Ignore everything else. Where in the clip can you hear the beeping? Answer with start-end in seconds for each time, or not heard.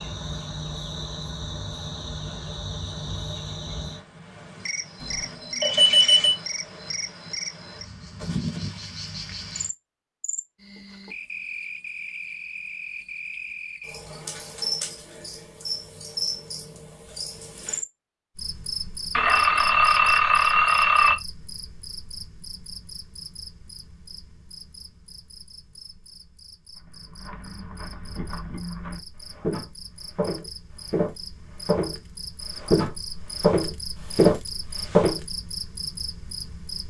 5.0-6.3, 19.1-21.1.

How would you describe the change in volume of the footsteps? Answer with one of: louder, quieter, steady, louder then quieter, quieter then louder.
louder.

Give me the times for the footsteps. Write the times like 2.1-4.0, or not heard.
26.8-35.2.